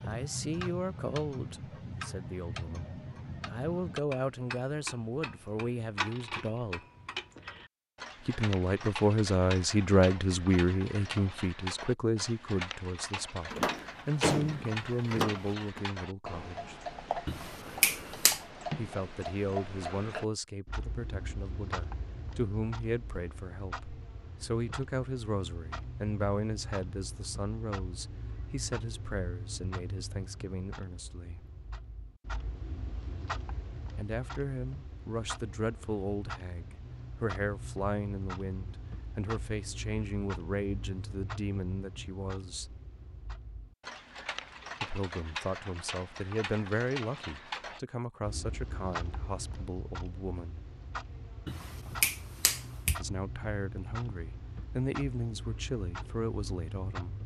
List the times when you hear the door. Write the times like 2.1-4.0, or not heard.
13.5-15.8.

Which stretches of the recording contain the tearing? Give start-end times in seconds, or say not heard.
not heard.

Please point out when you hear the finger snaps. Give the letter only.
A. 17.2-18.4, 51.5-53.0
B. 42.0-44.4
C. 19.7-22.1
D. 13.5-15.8
A.